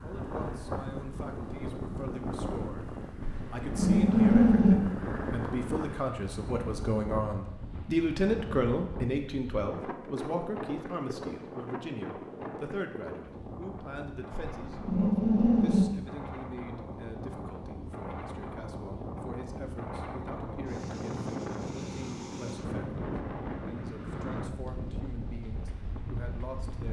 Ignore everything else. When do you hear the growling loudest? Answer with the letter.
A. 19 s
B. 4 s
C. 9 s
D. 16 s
B.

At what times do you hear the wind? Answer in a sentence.
You can hear the wind from 0.0 to 26.8 s.